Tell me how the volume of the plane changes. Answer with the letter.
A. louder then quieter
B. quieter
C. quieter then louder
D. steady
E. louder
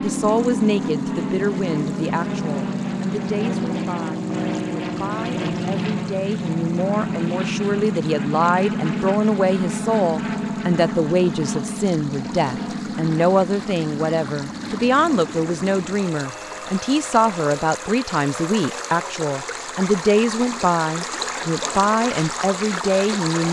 B.